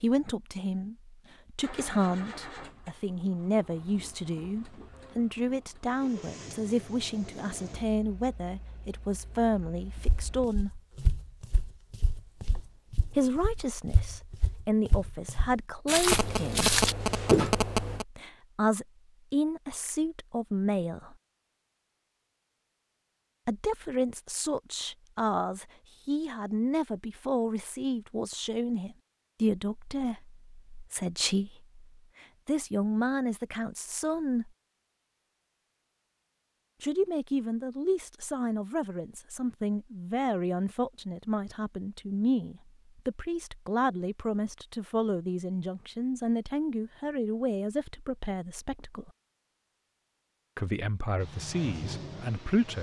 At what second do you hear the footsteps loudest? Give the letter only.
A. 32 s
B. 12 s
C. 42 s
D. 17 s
D.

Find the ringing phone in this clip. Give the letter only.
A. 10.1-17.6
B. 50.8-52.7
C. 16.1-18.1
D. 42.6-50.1
C.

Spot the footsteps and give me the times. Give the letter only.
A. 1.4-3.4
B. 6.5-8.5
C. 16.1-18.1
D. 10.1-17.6
D.